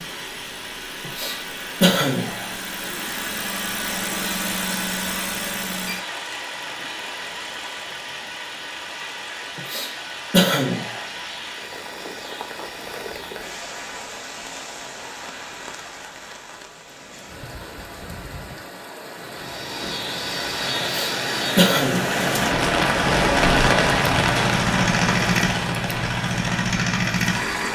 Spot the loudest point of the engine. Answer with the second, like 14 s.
25 s.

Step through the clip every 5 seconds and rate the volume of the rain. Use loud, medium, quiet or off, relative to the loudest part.
quiet, quiet, quiet, quiet, loud, medium.